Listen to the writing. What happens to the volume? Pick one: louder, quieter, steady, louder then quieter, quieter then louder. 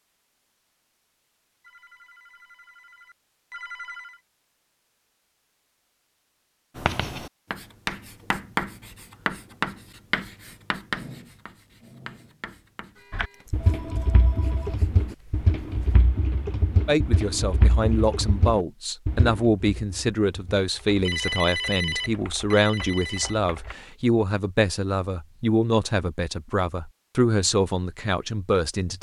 quieter.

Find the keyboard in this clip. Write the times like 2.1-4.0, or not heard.
13.1-23.8.